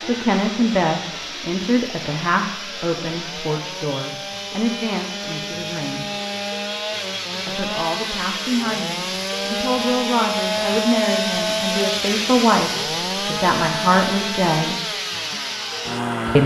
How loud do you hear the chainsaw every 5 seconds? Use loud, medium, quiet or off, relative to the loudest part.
medium, loud, loud, loud.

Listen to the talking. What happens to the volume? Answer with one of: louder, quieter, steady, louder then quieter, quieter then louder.
quieter then louder.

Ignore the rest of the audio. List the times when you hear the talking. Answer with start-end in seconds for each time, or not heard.
0.0-6.1, 7.4-14.8.